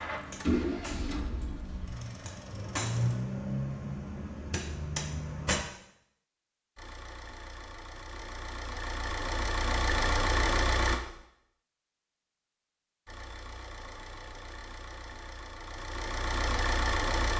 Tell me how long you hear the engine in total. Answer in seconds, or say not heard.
12 s.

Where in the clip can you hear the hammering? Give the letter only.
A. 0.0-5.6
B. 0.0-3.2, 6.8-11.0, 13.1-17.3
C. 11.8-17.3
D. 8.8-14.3
A.